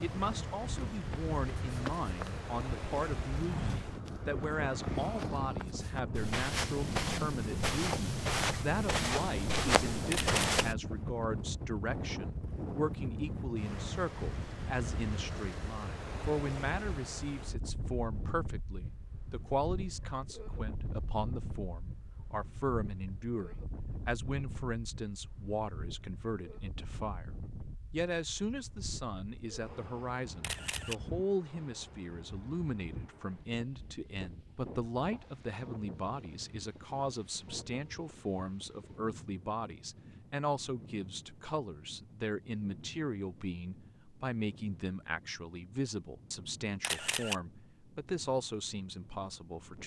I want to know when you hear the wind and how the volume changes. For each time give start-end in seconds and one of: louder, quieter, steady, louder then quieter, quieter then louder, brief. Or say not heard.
0.0-49.8 quieter.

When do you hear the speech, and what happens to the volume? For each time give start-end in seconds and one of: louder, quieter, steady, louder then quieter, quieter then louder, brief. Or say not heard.
0.0-27.3 steady
27.9-49.8 steady.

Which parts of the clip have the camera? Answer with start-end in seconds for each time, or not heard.
10.1-10.6, 30.4-30.9, 46.8-47.4.